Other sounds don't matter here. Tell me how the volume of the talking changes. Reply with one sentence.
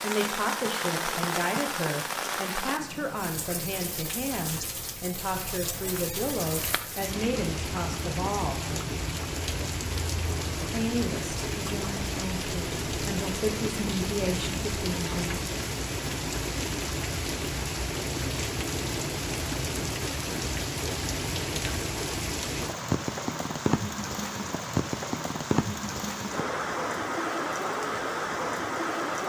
The volume of the talking stays about the same.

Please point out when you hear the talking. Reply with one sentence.
You can hear the talking from 0.0 to 8.6 s and from 10.7 to 15.4 s.